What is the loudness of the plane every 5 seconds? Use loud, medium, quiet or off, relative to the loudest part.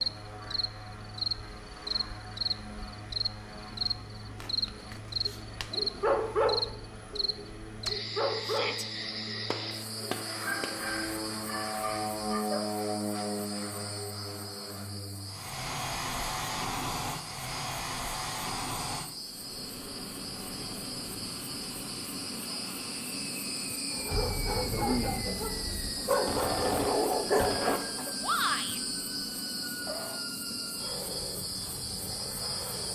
medium, medium, loud, loud, medium, medium, medium.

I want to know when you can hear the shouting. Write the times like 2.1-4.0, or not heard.
8.4-8.8, 28.2-28.8.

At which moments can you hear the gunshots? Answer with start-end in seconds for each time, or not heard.
9.5-10.8, 26.1-27.8.